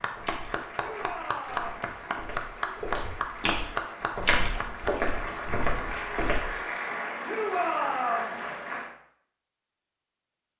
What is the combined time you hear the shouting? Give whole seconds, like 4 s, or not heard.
2 s.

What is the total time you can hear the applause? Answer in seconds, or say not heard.
9 s.